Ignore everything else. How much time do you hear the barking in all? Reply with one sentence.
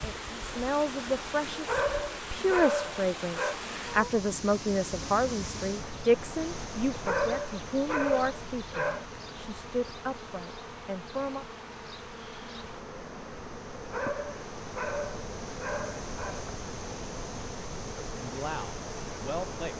The barking can be heard for 7 seconds in total.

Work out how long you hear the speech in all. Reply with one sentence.
The speech can be heard for 13 seconds in total.